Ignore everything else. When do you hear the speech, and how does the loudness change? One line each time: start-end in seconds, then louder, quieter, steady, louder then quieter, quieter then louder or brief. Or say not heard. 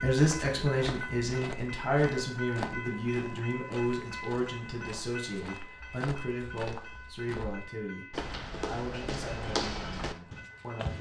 0.0-10.9 quieter.